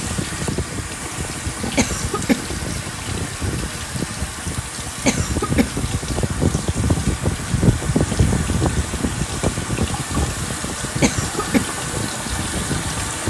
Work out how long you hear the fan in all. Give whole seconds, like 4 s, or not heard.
13 s.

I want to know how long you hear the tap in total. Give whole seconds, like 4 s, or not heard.
13 s.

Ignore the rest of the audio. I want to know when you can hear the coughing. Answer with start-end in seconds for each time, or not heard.
1.8-2.5, 5.0-5.8, 11.0-11.8.